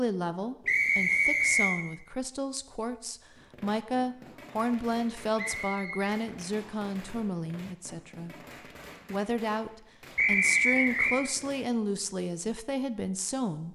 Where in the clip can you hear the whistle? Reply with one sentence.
The whistle can be heard from 0.7 to 1.8 s, from 5.3 to 6.9 s and from 10.2 to 11.2 s.